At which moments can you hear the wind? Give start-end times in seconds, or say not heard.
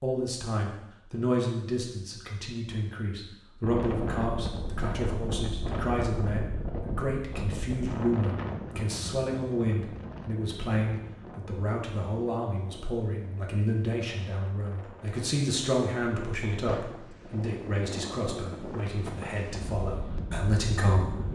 3.6-21.2.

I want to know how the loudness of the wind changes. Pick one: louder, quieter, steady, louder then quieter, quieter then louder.
quieter then louder.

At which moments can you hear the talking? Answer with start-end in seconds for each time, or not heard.
0.0-21.2.